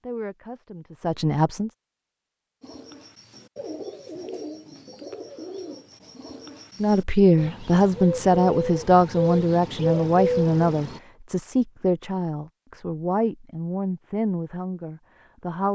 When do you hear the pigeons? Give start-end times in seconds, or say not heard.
2.6-11.0.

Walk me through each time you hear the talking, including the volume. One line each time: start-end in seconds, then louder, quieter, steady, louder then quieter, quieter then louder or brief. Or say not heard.
0.0-1.7 brief
6.8-15.6 quieter.